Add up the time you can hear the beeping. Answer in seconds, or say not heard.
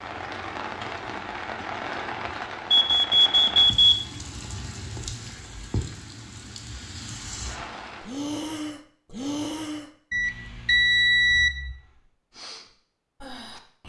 3 s.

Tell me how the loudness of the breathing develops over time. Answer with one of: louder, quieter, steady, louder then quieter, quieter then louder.
quieter then louder.